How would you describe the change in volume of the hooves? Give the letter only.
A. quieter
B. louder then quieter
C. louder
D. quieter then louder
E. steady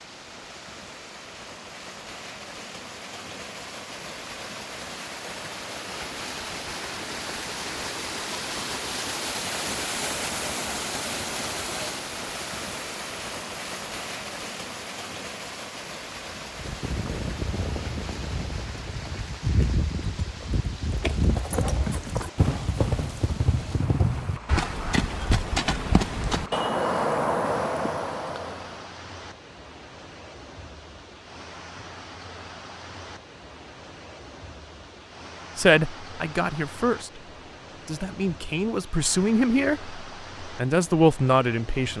C.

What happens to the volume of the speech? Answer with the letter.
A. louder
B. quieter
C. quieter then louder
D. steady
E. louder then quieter
C.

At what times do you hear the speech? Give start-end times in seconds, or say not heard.
35.5-41.9.